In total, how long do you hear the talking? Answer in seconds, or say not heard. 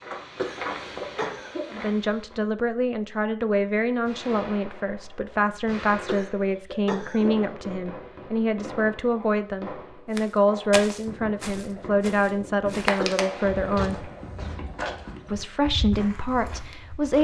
14 s.